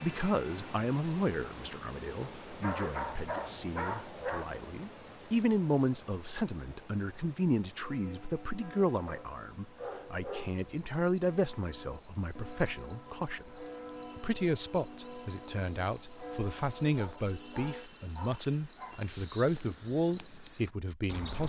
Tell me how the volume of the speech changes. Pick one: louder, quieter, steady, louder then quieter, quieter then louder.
steady.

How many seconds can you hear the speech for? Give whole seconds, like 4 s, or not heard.
21 s.